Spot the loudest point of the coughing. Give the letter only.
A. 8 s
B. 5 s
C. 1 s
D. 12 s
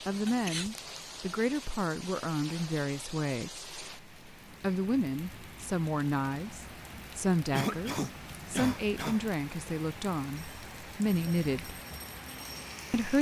A.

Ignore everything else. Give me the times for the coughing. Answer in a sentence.
You can hear the coughing from 0.2 to 1.0 s and from 7.5 to 9.2 s.